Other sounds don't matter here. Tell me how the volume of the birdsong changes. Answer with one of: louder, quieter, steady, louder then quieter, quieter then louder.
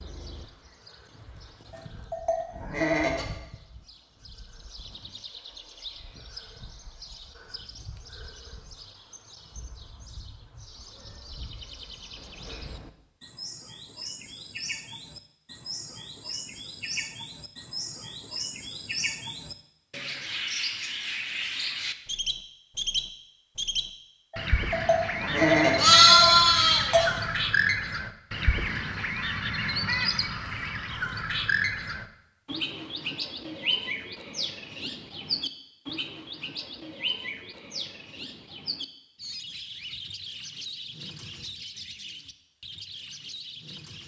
louder then quieter.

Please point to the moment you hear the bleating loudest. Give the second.
26 s.